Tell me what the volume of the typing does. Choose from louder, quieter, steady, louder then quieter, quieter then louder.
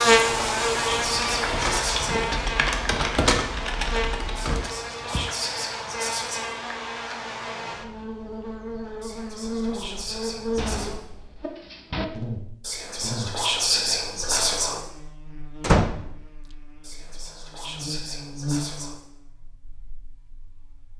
louder then quieter.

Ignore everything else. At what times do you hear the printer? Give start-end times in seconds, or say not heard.
not heard.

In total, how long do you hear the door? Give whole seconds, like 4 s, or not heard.
3 s.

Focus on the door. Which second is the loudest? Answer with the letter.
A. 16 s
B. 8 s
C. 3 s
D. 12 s
A.